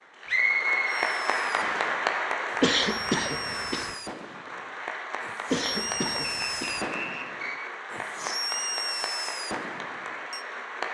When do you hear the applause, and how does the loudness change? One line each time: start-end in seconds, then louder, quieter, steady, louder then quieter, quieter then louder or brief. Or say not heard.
0.0-10.8 quieter.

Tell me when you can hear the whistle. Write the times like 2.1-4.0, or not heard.
0.2-1.9, 6.2-7.6.